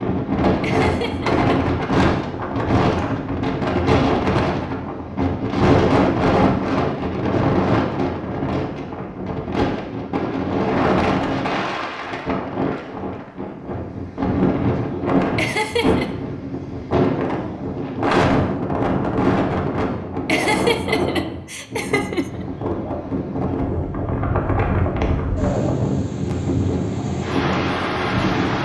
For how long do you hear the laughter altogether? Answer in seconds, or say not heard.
4 s.